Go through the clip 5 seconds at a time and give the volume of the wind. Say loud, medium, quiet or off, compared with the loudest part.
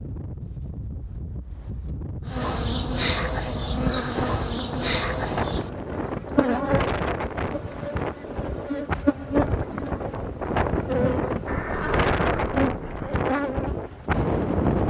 medium, loud, loud.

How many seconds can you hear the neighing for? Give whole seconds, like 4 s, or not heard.
2 s.